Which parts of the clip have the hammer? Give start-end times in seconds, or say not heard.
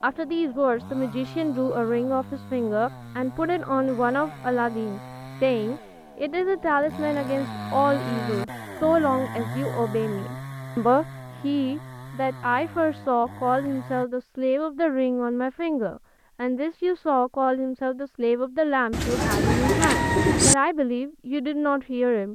not heard.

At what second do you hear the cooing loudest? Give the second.
20 s.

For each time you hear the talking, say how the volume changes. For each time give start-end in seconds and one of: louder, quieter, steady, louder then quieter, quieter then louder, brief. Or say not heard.
0.0-22.2 steady.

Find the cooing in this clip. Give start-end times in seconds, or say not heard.
18.9-20.6.